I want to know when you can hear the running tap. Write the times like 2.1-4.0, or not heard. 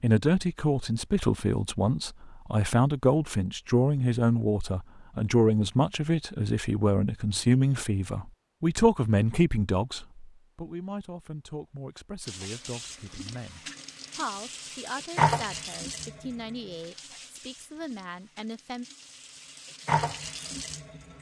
12.2-21.1.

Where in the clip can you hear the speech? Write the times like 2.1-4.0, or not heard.
0.0-18.9.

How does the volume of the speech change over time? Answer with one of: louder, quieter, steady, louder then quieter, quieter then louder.
quieter.